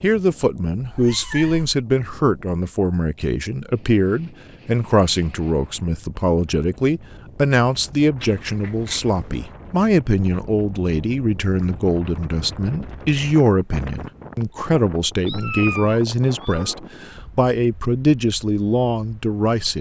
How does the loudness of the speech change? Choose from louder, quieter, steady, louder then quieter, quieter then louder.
steady.